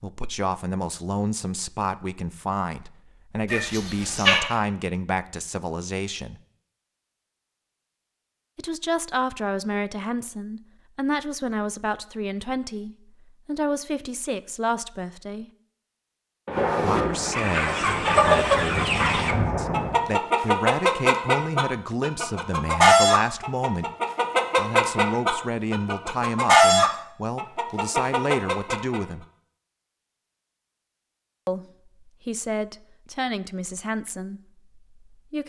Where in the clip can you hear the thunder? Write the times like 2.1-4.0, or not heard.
16.4-20.1.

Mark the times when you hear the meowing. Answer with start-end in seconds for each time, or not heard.
3.5-4.4.